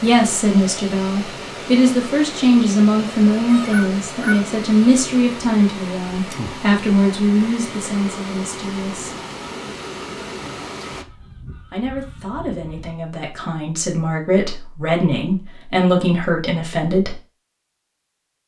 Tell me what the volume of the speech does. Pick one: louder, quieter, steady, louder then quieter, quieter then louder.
quieter then louder.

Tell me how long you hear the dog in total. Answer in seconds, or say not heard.
not heard.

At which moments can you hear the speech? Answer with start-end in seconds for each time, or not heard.
0.0-9.2, 11.7-17.1.